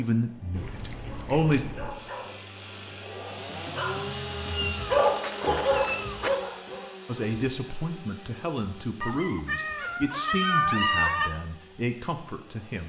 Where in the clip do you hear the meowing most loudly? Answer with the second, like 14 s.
11 s.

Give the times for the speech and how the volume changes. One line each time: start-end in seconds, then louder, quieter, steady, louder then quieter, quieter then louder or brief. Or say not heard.
0.0-1.6 brief
7.0-12.8 steady.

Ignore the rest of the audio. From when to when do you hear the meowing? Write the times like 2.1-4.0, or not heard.
0.6-1.9, 4.5-6.3, 9.0-11.3.